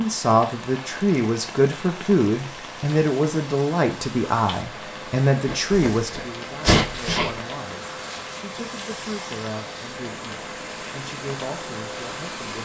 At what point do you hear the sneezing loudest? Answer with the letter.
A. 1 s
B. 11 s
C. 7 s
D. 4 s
C.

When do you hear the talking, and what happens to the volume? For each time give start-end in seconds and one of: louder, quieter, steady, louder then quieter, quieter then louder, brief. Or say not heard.
0.0-12.5 quieter.